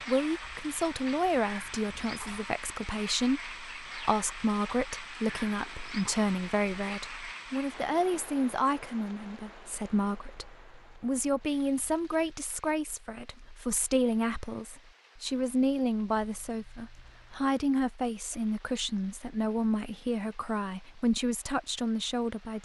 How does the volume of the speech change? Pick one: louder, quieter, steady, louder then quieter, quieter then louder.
steady.